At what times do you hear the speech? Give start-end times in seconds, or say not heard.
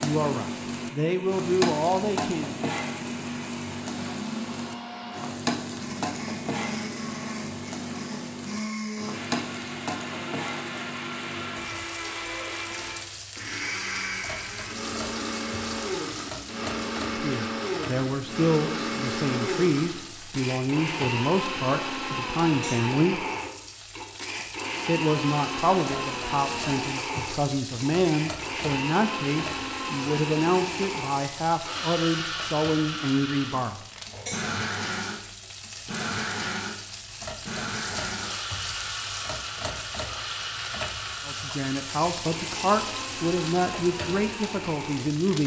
0.0-2.5, 17.1-23.2, 24.9-33.8, 41.2-45.4.